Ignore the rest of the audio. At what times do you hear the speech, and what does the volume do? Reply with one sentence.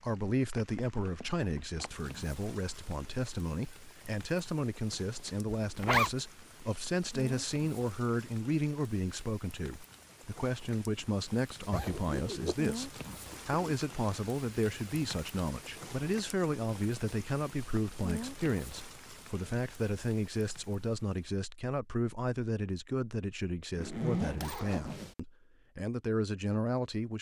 You can hear the speech from 0.0 to 27.1 s, at a steady volume.